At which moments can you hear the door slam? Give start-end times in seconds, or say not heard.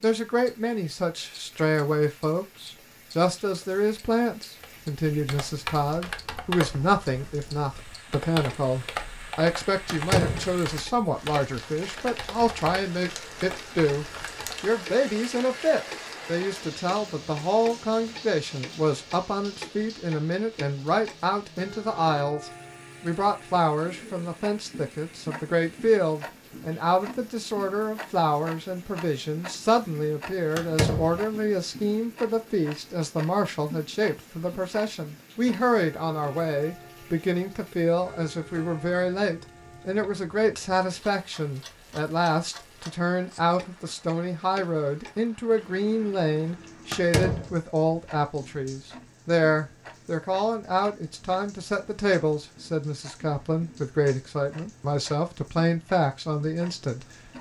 9.8-10.5, 30.6-31.2, 46.9-47.5.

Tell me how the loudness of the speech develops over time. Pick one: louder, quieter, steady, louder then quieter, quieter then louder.
steady.